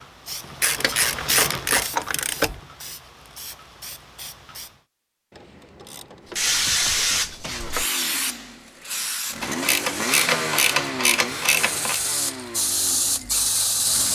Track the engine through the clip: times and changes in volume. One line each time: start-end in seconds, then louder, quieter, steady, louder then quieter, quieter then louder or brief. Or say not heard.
7.5-14.1 louder then quieter.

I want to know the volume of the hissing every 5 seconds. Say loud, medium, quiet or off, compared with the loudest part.
medium, loud, loud.